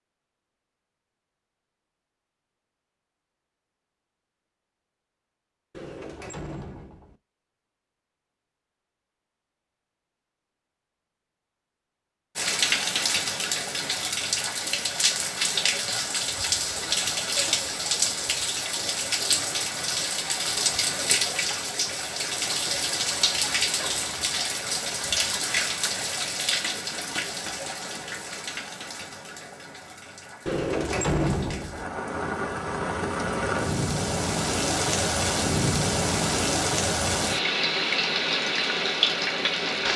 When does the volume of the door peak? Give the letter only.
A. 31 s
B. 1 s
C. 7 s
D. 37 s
A.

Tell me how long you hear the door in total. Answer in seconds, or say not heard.
3 s.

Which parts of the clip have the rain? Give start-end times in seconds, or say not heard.
12.3-39.9.